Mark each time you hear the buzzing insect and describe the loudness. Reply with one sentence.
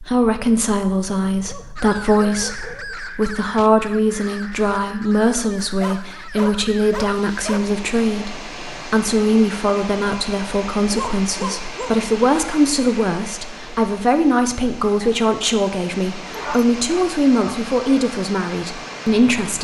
The buzzing insect can't be heard in this clip.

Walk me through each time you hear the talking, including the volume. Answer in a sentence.
The talking can be heard from 0.0 to 19.6 s, at a steady volume.